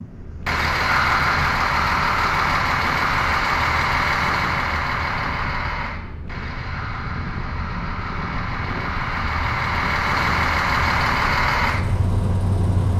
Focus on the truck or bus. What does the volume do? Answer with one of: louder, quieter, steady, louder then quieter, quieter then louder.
quieter then louder.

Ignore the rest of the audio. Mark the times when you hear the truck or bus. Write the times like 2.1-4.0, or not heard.
0.0-12.9.